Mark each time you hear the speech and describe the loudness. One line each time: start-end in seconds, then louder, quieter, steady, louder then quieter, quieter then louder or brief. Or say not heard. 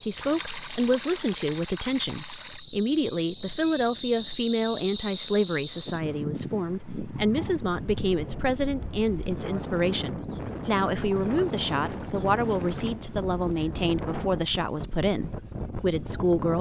0.0-16.5 steady.